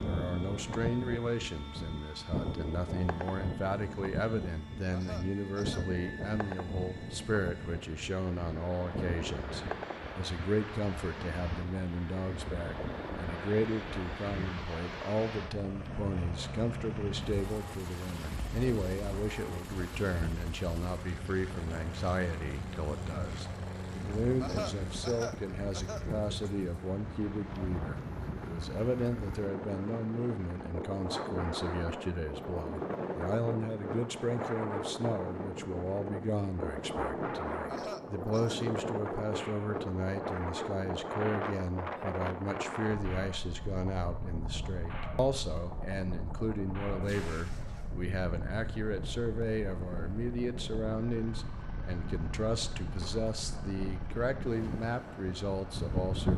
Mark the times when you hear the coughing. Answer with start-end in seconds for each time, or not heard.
4.9-5.8, 24.4-26.5, 37.6-38.6.